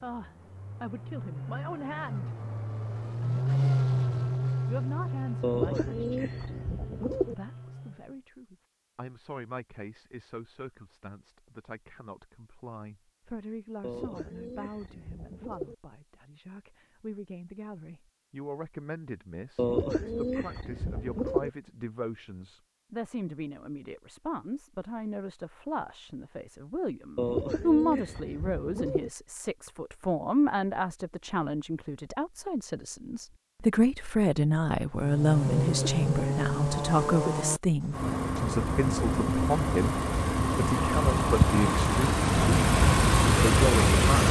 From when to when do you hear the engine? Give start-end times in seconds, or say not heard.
0.0-8.2, 34.9-44.2.